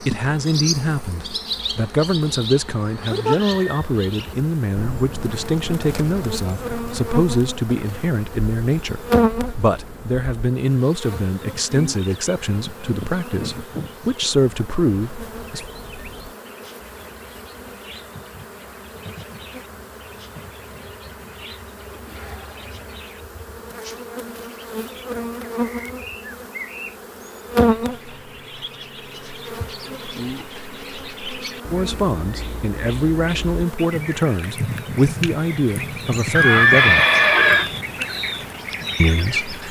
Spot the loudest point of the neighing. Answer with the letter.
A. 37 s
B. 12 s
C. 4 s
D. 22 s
A.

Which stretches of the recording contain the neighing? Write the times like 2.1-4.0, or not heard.
3.0-3.9, 36.4-37.7.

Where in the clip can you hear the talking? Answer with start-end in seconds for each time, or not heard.
0.0-15.7, 31.7-37.0, 39.0-39.6.